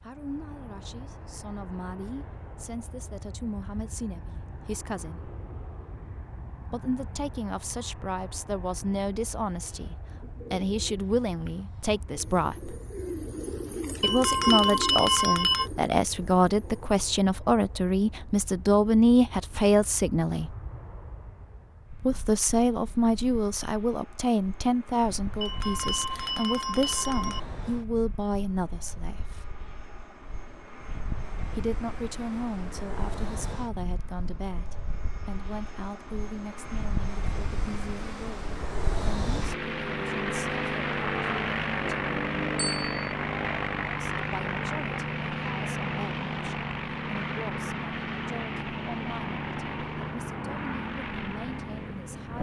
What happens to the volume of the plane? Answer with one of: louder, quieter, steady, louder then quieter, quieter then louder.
louder.